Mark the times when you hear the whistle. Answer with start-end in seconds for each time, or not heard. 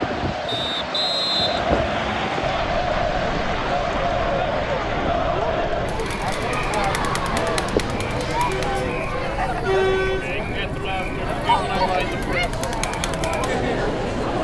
0.5-2.5.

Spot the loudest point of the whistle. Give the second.
1 s.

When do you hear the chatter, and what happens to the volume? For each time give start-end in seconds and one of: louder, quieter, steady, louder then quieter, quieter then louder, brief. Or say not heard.
0.0-14.3 steady.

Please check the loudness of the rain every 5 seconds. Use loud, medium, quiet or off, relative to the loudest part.
loud, loud, off.